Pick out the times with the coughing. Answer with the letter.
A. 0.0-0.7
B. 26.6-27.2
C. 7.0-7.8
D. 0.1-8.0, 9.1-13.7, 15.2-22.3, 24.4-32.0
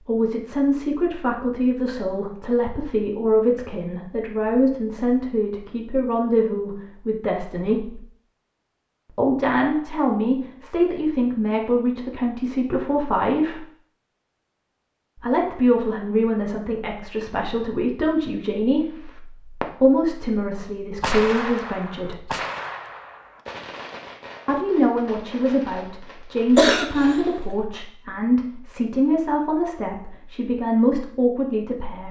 B.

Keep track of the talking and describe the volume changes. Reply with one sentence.
The loudness of the talking stays about the same.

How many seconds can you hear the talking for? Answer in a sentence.
The talking can be heard for 27 seconds in total.